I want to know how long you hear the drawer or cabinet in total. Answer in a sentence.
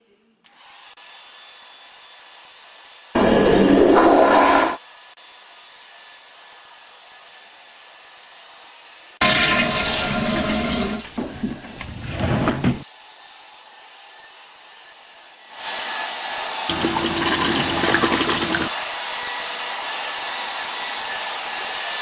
You can hear the drawer or cabinet for 2 seconds altogether.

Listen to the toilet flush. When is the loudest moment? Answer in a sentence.
The loudest moment of the toilet flush is at 4 seconds.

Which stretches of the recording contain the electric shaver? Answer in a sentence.
You can't hear the electric shaver here.